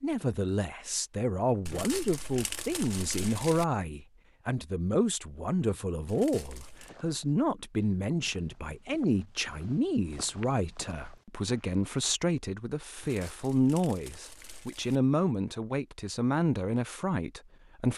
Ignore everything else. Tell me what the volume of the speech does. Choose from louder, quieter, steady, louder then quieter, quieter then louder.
steady.